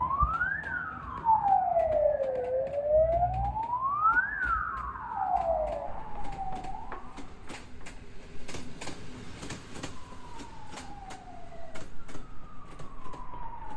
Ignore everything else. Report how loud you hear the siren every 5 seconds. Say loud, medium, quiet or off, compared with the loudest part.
loud, medium, quiet.